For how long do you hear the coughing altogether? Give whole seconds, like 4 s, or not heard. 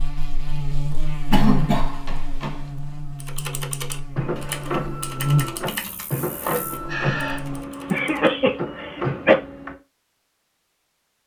3 s.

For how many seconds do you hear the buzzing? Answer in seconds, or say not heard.
8 s.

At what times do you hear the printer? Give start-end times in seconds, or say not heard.
4.2-9.8.